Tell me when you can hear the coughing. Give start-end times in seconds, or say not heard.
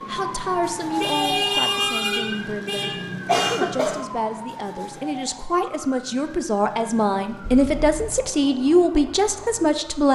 3.2-4.0.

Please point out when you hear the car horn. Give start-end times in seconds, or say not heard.
1.0-3.5, 7.4-8.2.